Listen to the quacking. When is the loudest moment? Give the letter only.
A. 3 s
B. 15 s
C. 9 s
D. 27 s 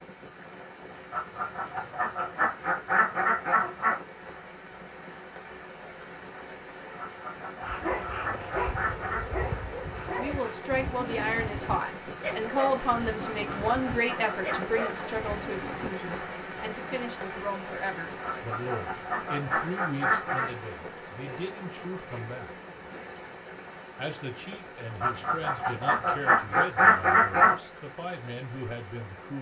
D.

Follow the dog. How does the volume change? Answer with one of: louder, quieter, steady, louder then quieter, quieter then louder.
steady.